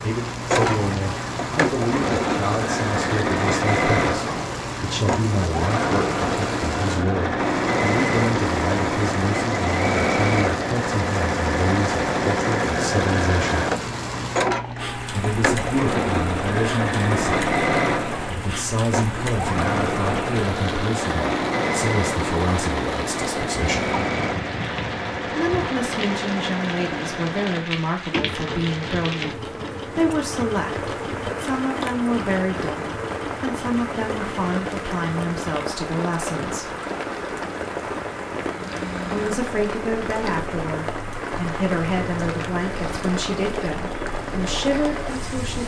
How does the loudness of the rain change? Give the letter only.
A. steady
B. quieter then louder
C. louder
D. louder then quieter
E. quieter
A.